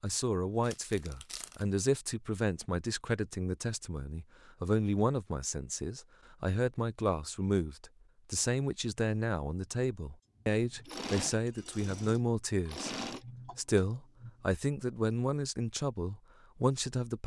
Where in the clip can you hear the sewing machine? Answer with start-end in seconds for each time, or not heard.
10.5-14.6.